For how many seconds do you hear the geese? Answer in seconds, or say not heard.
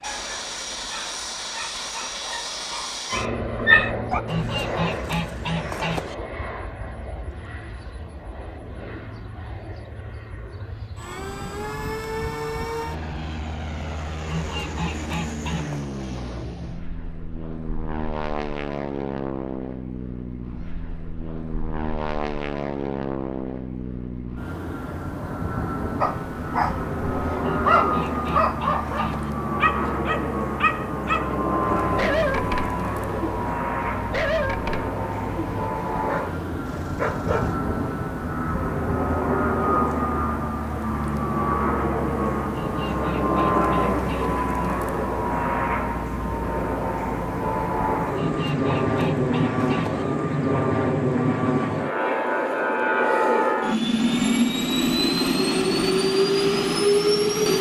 9 s.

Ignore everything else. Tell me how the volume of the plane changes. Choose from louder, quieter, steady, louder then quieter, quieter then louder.
louder.